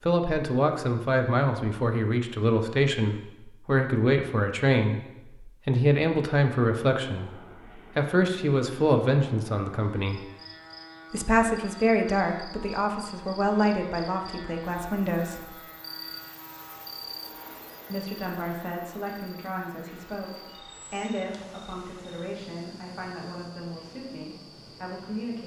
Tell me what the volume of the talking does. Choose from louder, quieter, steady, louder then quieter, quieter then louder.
quieter.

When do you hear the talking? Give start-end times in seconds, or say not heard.
0.0-10.2, 11.1-15.5, 17.9-25.4.